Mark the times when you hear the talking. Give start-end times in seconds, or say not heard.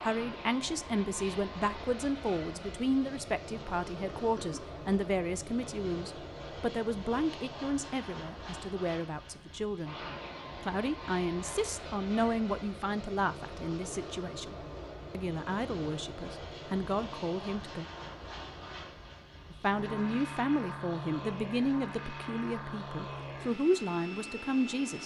0.0-9.9, 10.6-17.9, 19.5-25.0.